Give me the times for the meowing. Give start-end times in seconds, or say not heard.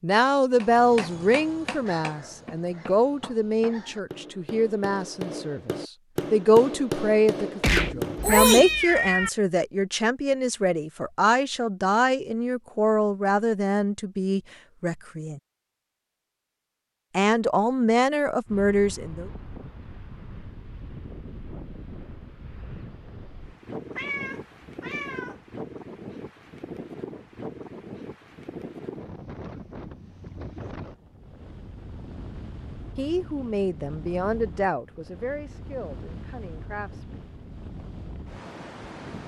7.6-9.3, 23.9-25.4.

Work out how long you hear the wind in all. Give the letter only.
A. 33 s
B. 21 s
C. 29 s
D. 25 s
B.